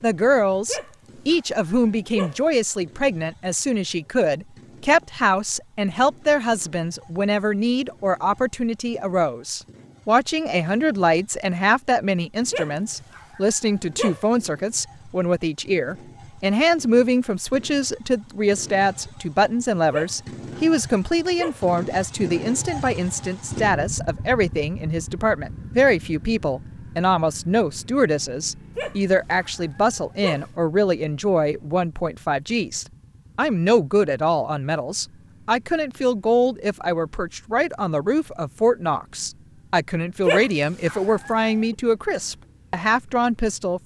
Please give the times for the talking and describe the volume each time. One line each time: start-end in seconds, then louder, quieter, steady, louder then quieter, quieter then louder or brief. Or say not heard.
0.0-43.8 steady.